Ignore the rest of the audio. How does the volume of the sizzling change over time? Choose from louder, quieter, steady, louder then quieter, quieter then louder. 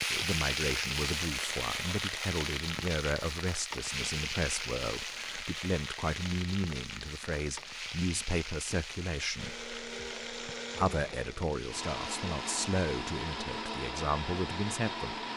quieter.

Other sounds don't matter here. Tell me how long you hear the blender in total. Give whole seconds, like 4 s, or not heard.
6 s.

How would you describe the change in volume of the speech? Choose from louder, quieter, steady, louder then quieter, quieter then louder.
steady.